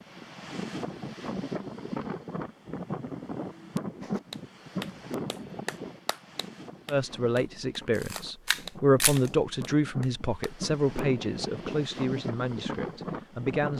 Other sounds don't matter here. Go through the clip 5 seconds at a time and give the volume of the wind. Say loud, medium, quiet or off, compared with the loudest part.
loud, medium, loud.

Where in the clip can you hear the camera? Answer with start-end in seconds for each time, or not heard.
8.0-9.3.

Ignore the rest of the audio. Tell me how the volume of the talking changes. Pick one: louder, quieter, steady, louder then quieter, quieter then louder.
louder then quieter.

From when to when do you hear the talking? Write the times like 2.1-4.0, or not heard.
6.9-13.7.